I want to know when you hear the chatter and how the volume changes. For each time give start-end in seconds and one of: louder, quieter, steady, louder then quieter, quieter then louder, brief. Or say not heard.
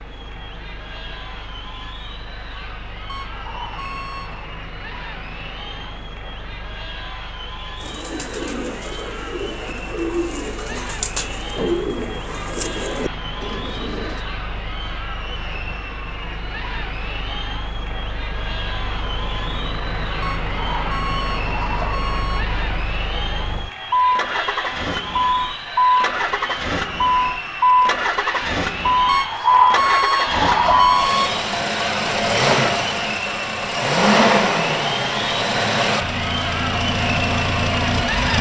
0.0-38.3 louder.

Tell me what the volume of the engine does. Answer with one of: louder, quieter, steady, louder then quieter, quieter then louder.
louder.